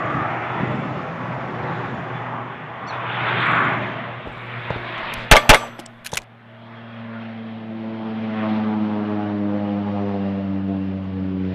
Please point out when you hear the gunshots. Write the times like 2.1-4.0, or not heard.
4.2-6.2.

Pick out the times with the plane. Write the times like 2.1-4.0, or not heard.
0.0-11.4.